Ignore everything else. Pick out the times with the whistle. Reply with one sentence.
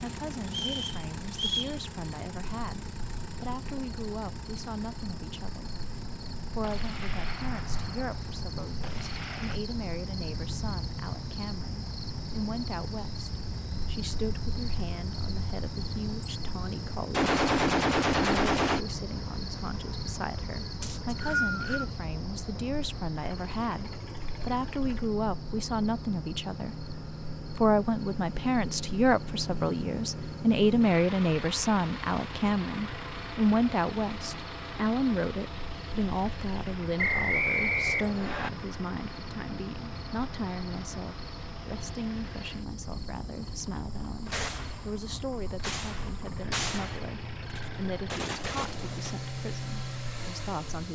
The whistle can be heard from 0.5 to 1.8 s, from 20.8 to 21.9 s and from 37.0 to 38.5 s.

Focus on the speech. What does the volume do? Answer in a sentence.
The loudness of the speech goes up, then down.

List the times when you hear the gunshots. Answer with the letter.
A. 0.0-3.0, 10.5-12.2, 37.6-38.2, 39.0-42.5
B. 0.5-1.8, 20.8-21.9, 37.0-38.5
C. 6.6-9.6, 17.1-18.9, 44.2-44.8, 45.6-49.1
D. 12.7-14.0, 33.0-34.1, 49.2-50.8
C.